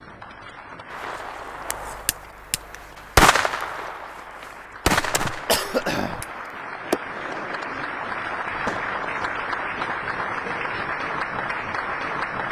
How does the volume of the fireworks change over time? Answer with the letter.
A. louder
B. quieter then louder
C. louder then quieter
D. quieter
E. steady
C.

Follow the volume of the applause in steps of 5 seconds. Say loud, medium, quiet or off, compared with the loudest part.
quiet, loud, loud.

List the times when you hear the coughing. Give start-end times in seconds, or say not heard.
4.9-6.2.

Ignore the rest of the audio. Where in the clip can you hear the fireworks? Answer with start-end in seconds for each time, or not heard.
0.9-9.4.